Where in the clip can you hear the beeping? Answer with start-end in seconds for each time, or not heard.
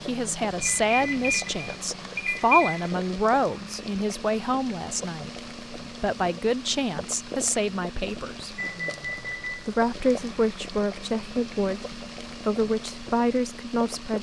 0.6-2.9, 8.6-9.8.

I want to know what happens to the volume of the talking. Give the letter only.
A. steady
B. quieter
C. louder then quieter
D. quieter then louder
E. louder
A.